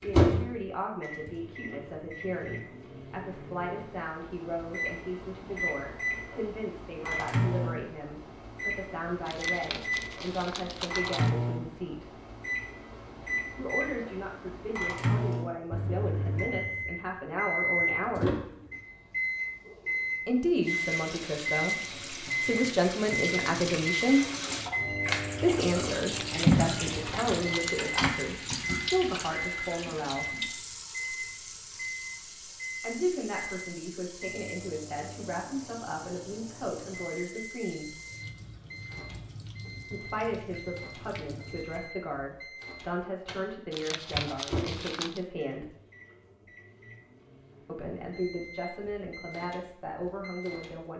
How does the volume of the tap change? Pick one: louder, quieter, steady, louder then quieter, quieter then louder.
louder then quieter.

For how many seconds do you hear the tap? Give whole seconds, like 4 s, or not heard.
21 s.